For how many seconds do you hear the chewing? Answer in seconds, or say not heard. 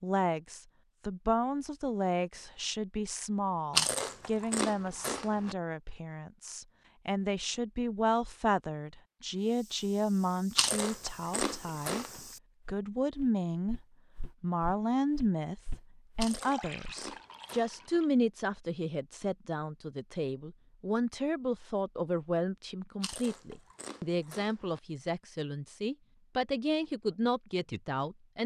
7 s.